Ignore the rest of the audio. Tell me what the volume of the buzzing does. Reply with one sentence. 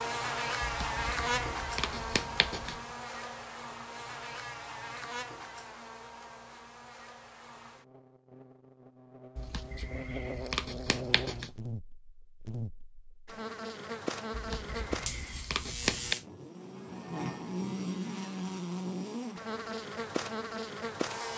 The volume of the buzzing goes down, then up.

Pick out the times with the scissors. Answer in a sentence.
The scissors can be heard from 0.8 to 2.8 s, from 9.3 to 11.5 s and from 14.3 to 16.1 s.